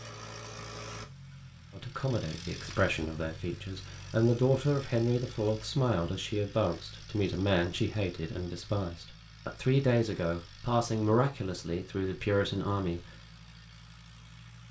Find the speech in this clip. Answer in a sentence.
You can hear the speech from 1.7 to 13.0 s.